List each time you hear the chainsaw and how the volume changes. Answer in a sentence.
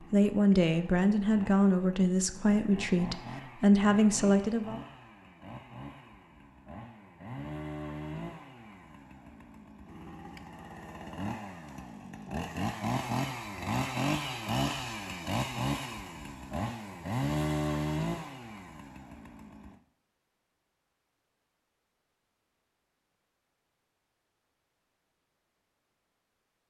The chainsaw can be heard from 0.0 to 19.8 s, getting louder.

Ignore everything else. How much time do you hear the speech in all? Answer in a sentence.
You can hear the speech for 5 seconds altogether.